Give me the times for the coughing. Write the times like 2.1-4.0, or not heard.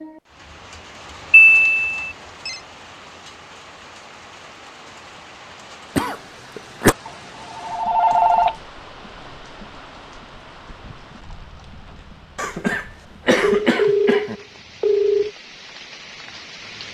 6.0-7.0, 12.3-14.3.